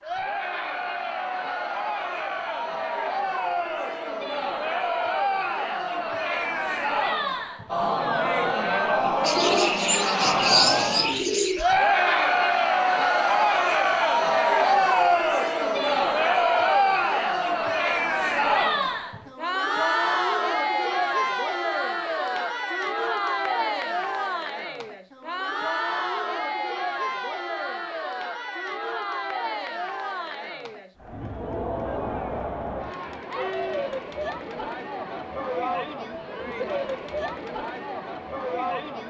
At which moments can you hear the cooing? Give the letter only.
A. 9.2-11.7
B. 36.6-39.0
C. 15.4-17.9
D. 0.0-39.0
A.